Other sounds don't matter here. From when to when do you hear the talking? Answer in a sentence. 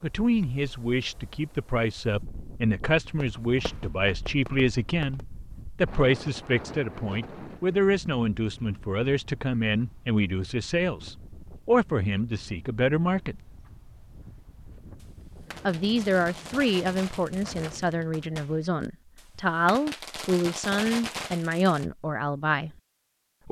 The talking can be heard from 0.0 to 13.4 s and from 15.7 to 22.7 s.